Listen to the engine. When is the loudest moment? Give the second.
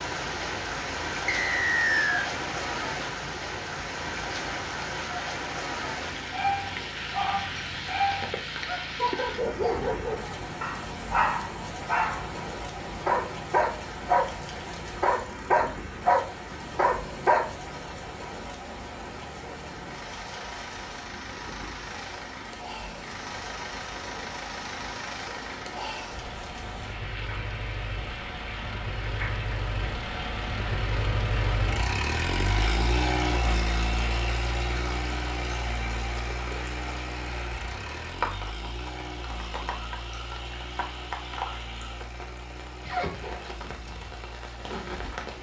33 s.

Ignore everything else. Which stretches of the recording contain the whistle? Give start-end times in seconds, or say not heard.
1.2-2.3.